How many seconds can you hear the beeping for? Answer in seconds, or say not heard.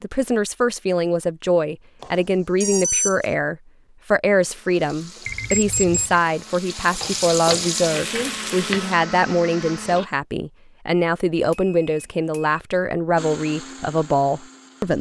3 s.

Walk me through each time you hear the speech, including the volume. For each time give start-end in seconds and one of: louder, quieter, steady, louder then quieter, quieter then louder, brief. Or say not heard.
0.0-14.9 steady.